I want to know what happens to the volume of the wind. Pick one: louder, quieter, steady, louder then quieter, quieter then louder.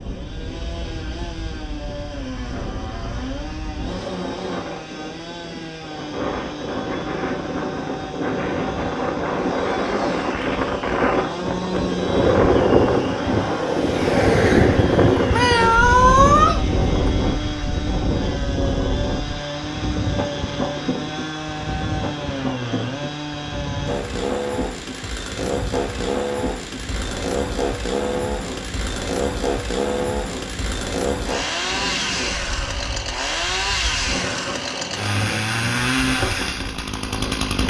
louder then quieter.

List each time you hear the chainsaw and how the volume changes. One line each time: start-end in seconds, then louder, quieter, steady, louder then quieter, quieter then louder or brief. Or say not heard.
0.0-37.6 louder.